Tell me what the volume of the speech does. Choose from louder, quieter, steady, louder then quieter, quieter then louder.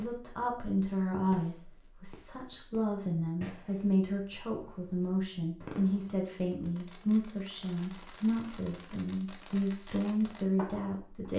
steady.